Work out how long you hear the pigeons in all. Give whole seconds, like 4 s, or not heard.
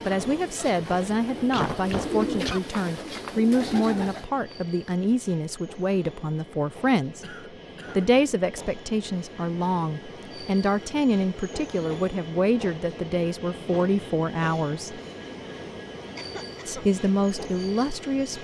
4 s.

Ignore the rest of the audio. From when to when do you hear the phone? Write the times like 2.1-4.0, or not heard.
not heard.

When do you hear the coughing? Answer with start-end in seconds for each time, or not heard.
1.5-2.6, 7.2-8.2, 16.1-16.9.